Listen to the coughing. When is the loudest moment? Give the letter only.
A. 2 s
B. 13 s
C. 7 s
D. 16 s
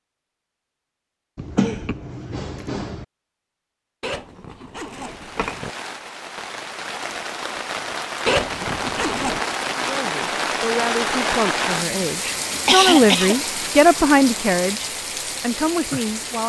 B.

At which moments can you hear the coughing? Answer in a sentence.
The coughing can be heard from 1.4 to 3.0 s and from 12.5 to 13.3 s.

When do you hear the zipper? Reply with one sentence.
You can hear the zipper from 4.0 to 5.7 s and from 8.2 to 9.4 s.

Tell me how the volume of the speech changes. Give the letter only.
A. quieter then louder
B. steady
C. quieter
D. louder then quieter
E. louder
D.